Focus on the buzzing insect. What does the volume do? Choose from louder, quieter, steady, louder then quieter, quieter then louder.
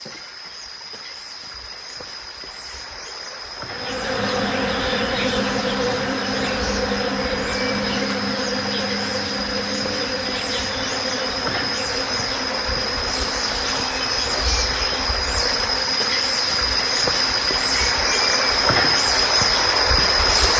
quieter.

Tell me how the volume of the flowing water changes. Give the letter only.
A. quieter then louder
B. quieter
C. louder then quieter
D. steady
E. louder
E.